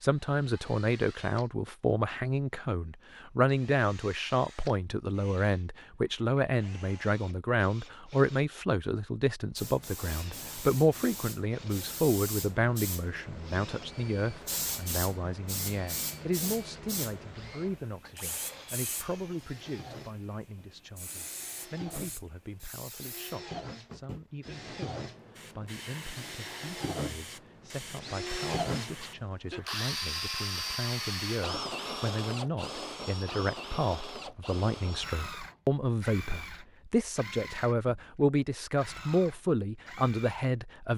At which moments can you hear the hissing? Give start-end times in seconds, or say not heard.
9.6-29.3.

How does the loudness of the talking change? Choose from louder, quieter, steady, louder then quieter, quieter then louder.
quieter then louder.